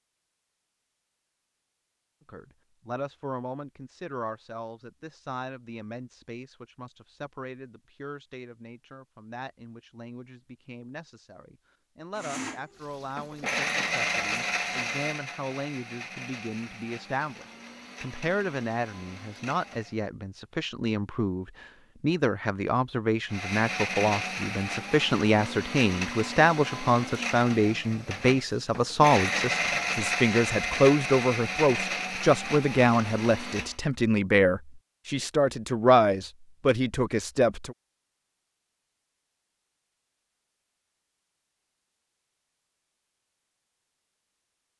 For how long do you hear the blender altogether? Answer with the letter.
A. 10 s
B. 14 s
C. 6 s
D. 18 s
D.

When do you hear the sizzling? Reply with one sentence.
The sizzling can't be heard in this clip.